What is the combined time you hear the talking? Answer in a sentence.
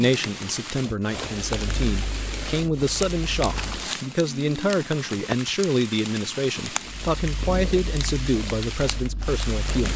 The talking can be heard for 10 seconds in total.